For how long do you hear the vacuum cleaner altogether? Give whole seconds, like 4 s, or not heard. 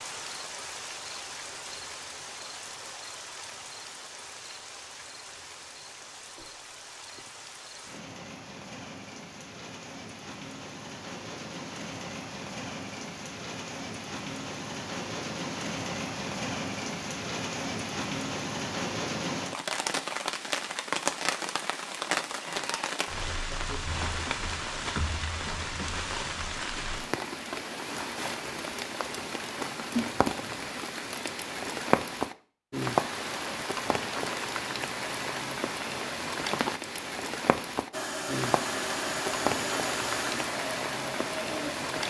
4 s.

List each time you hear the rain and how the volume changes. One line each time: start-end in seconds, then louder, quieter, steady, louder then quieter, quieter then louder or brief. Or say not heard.
0.0-42.0 louder.